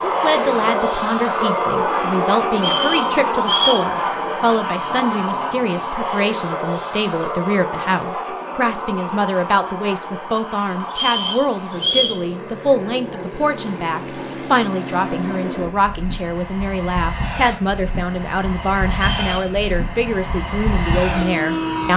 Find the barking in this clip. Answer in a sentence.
The barking can't be heard in this clip.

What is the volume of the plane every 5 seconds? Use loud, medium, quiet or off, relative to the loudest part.
loud, medium, medium, medium, loud.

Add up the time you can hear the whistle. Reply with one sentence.
You can hear the whistle for 3 seconds altogether.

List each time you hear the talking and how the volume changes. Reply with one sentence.
You can hear the talking from 0.0 to 21.9 s, at a steady volume.